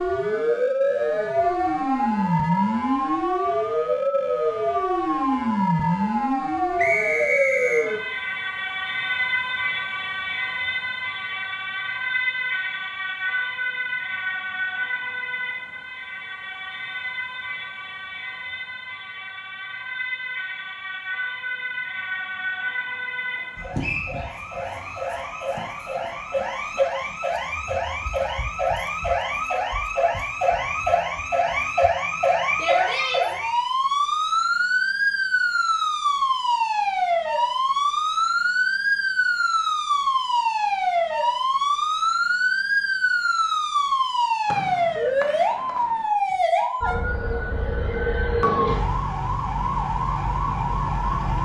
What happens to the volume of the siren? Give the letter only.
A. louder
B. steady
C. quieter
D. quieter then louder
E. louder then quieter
D.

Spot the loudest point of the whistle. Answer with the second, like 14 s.
7 s.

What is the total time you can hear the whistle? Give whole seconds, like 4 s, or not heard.
3 s.